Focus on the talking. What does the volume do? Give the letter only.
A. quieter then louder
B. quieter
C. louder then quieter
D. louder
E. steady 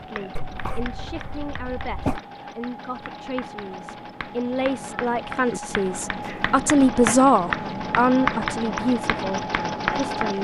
C.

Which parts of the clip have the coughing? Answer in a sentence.
You can hear the coughing from 0.3 to 2.2 s and from 6.2 to 7.2 s.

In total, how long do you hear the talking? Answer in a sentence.
You can hear the talking for 10 seconds altogether.